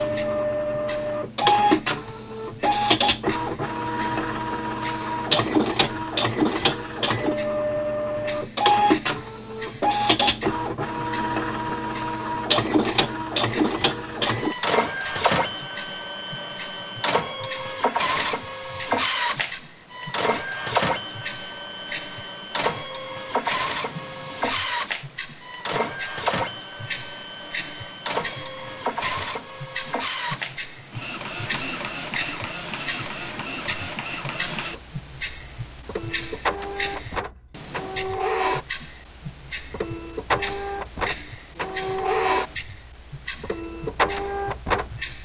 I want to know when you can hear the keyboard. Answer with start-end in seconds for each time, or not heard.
not heard.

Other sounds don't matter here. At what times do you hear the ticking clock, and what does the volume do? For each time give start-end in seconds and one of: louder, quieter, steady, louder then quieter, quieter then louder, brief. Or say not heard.
0.0-45.1 louder.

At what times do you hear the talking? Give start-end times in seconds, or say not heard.
not heard.